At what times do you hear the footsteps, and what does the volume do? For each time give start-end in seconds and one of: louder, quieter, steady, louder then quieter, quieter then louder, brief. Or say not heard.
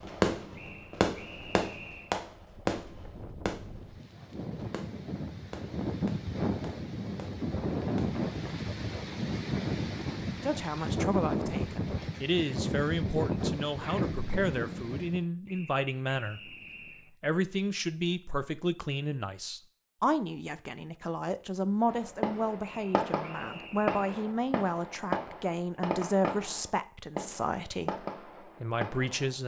not heard.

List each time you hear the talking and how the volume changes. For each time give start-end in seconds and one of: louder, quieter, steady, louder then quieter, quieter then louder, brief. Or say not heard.
10.4-29.4 steady.